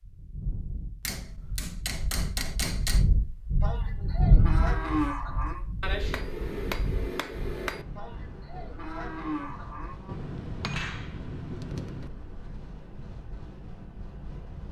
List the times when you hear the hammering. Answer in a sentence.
The hammering can be heard from 1.1 to 3.1 s, from 5.8 to 7.8 s and from 10.1 to 12.1 s.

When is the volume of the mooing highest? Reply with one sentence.
The loudest moment of the mooing is at 5 seconds.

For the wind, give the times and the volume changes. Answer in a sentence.
You can hear the wind from 0.0 to 14.6 s, getting louder then quieter.